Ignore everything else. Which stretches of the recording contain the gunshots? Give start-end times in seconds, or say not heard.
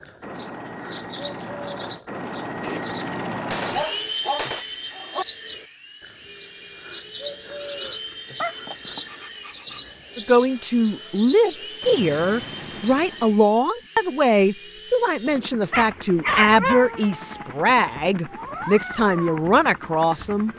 2.6-4.7.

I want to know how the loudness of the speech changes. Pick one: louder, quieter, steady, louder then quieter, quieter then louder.
steady.